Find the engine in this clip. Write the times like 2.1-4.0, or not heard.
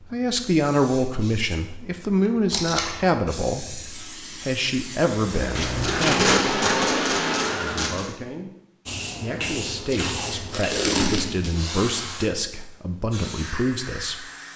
5.3-8.0.